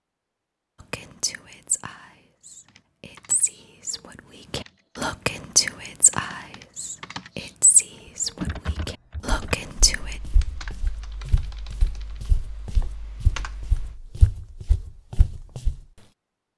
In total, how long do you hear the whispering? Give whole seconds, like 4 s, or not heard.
9 s.